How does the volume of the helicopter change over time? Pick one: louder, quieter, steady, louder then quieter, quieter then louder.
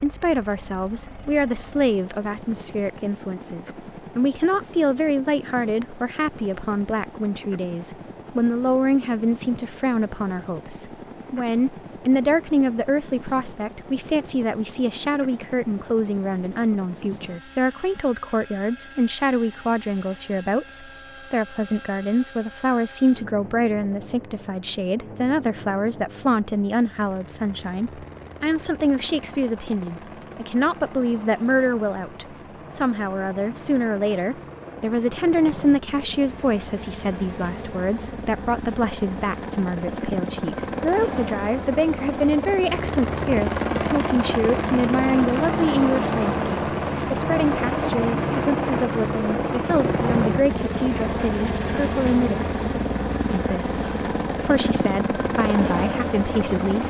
louder.